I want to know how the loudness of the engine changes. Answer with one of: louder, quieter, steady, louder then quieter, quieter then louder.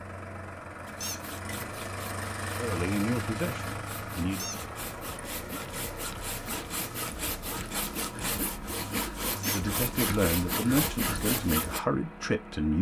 quieter.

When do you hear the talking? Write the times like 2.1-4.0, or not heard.
2.5-4.5, 9.3-12.7.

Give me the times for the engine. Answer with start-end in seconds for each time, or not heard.
0.0-12.7.